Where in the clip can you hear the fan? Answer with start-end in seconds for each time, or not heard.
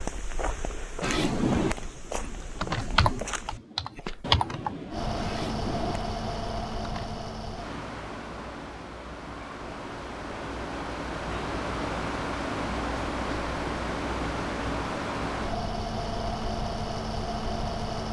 4.9-18.0.